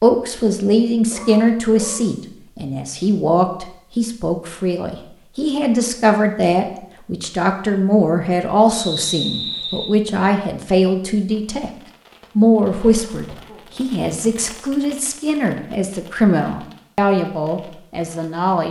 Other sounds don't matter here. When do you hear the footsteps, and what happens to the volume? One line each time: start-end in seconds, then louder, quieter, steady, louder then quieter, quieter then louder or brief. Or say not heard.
not heard.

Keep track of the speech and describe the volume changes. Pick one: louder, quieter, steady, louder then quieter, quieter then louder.
steady.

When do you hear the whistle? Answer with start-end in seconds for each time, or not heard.
8.7-10.0.